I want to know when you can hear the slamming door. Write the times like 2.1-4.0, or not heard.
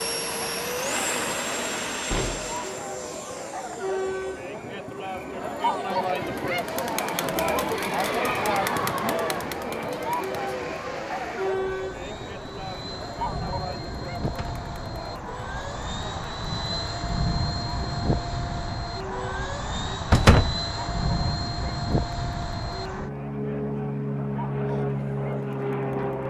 2.0-2.6, 14.2-14.7, 20.1-20.6.